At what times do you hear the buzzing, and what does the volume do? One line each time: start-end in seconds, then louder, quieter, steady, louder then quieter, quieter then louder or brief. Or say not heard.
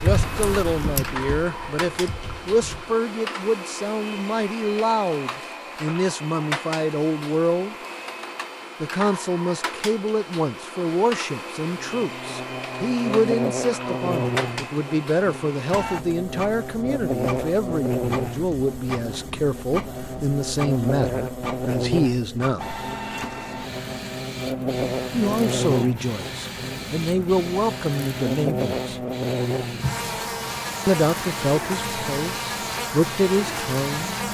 11.7-34.2 steady.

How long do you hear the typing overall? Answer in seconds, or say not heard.
3 s.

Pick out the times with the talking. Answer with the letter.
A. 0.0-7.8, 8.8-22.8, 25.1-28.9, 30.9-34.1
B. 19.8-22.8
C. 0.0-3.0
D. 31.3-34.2
A.